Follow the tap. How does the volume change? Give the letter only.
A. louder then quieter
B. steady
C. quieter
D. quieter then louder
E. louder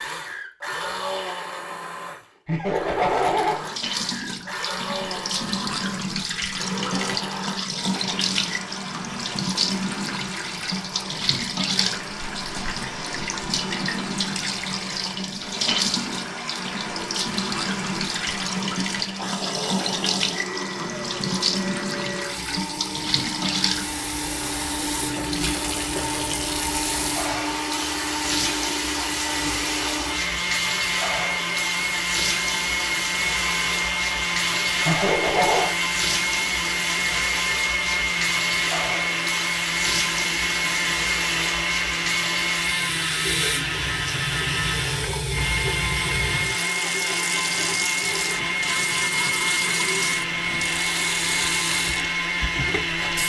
B.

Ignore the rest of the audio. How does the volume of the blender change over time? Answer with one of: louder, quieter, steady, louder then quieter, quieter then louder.
louder.